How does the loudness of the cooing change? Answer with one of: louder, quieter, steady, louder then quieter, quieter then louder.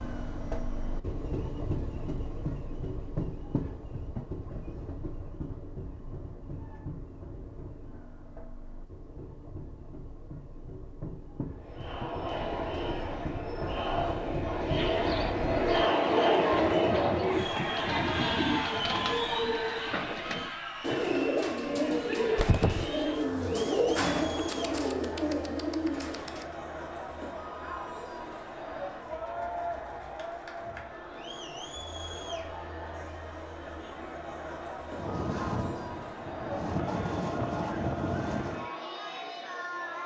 louder.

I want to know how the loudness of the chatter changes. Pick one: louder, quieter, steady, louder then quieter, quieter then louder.
quieter.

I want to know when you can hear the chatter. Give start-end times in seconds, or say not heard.
11.6-40.0.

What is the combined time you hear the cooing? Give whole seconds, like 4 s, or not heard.
12 s.